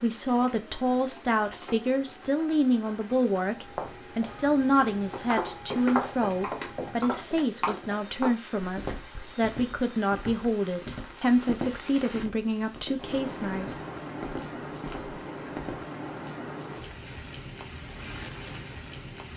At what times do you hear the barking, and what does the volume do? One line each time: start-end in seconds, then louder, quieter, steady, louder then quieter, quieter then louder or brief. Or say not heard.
not heard.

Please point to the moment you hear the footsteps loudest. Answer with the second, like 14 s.
6 s.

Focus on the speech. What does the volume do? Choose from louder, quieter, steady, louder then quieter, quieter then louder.
steady.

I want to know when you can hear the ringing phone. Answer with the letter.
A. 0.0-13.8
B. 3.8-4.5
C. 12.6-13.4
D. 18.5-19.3
B.